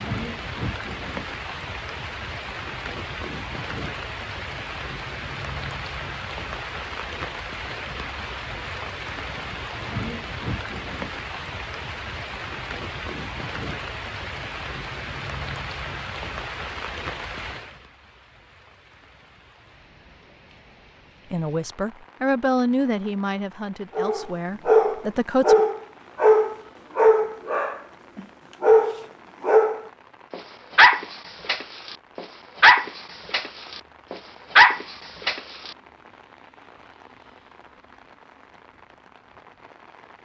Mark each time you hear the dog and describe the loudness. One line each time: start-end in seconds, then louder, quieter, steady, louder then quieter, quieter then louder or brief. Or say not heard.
23.9-35.7 steady.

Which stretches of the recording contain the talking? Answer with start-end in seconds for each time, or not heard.
21.3-25.6.